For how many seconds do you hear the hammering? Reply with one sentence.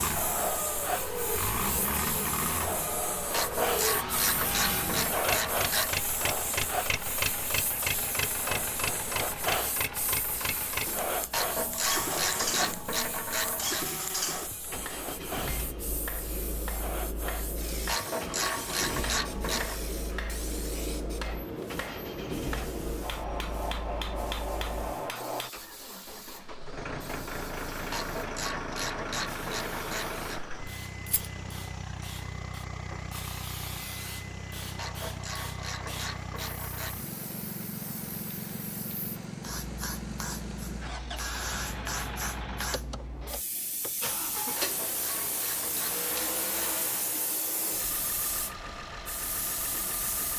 You can hear the hammering for 11 seconds altogether.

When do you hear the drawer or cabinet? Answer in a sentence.
The drawer or cabinet can't be heard in this clip.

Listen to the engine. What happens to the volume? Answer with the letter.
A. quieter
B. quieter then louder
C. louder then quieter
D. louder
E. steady
A.